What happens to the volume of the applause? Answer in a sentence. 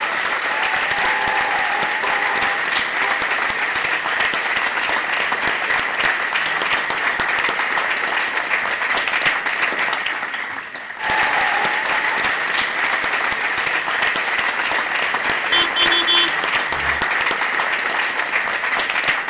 The loudness of the applause stays about the same.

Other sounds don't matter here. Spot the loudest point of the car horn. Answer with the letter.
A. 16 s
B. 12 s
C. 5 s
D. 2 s
A.